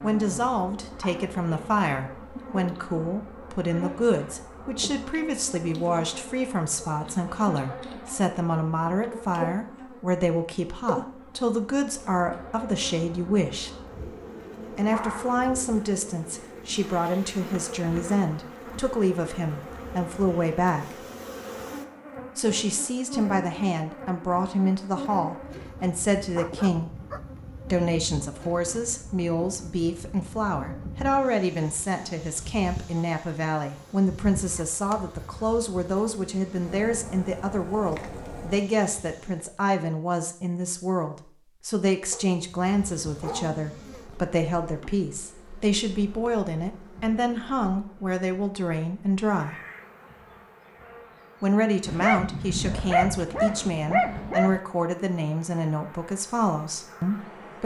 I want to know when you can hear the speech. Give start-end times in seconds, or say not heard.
0.0-13.7, 14.7-21.0, 22.4-26.9, 27.7-49.6, 51.4-57.6.